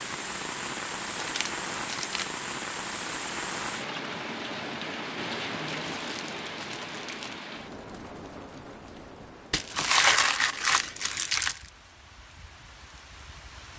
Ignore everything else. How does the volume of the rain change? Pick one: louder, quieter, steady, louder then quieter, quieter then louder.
quieter.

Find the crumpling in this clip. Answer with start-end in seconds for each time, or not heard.
1.1-2.2, 5.7-7.5, 9.5-11.7.